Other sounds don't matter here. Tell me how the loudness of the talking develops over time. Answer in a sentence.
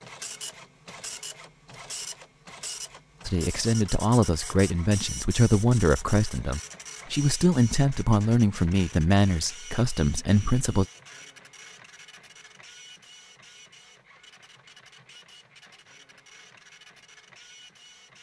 The volume of the talking stays about the same.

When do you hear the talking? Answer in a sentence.
You can hear the talking from 3.2 to 10.8 s.